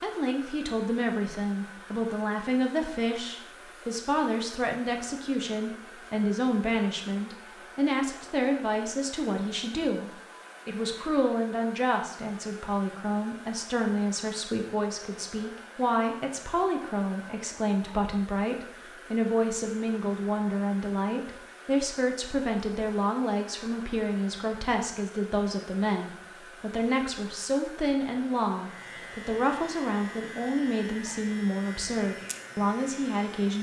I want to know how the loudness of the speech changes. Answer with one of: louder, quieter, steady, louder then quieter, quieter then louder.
steady.